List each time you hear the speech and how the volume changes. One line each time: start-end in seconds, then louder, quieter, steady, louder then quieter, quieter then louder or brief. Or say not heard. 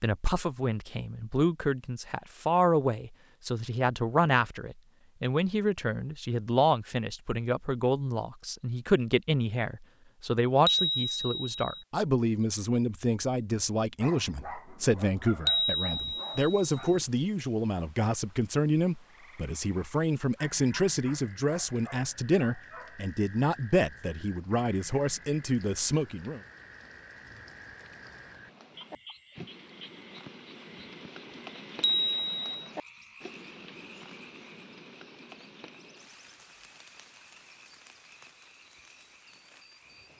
0.0-26.4 steady.